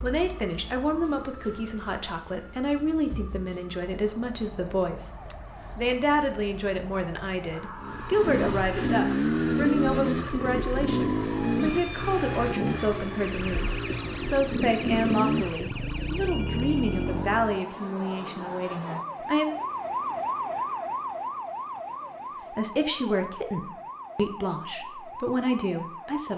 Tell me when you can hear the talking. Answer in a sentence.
The talking can be heard from 0.0 to 5.0 s, from 5.8 to 19.5 s and from 22.5 to 26.3 s.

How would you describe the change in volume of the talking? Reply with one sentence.
The loudness of the talking stays about the same.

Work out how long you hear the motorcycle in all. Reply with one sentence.
The motorcycle can be heard for 10 seconds in total.